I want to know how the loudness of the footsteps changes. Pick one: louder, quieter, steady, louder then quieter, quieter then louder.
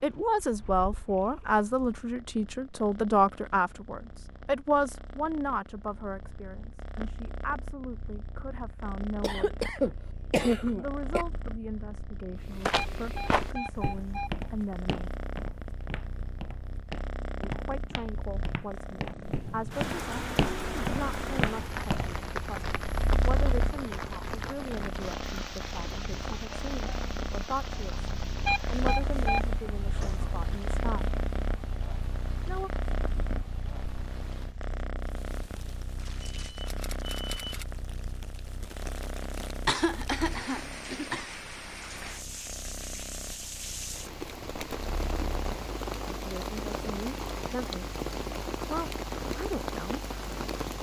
quieter then louder.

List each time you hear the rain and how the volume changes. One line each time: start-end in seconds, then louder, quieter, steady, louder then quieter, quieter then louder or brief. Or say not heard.
19.0-50.7 quieter then louder.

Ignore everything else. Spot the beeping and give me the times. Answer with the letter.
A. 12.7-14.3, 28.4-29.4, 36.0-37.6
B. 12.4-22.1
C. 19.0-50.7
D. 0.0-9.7
A.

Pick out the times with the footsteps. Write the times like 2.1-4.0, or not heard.
12.4-22.1.